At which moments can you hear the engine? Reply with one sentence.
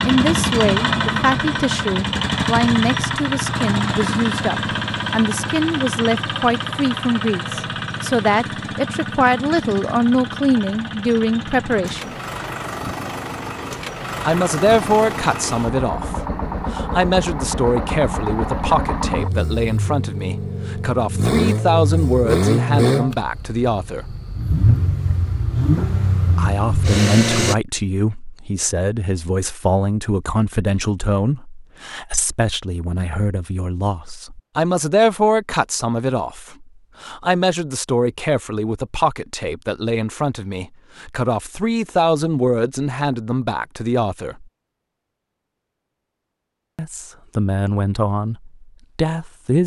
The engine can be heard from 0.0 to 27.6 s.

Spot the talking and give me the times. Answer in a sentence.
The talking can be heard from 0.0 to 12.2 s, from 14.2 to 24.1 s, from 26.4 to 44.5 s and from 46.8 to 49.6 s.